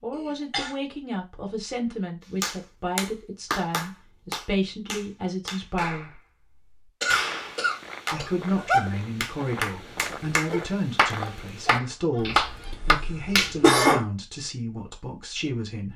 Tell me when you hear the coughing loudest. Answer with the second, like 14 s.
14 s.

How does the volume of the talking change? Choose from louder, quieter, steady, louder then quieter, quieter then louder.
steady.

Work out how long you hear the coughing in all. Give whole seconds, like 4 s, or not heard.
4 s.